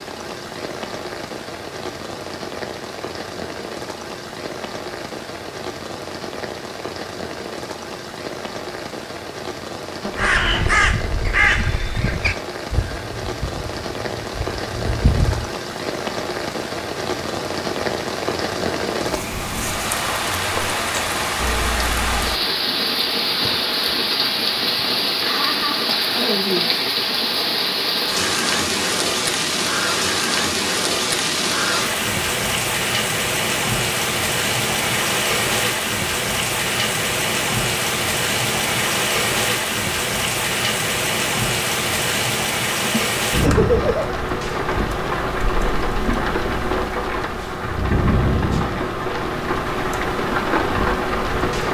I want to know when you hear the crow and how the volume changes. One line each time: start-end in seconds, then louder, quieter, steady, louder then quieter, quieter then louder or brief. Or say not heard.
10.2-15.5 quieter then louder.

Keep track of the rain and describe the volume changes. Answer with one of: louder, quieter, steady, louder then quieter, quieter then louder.
louder.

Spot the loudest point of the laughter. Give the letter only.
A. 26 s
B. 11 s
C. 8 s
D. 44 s
D.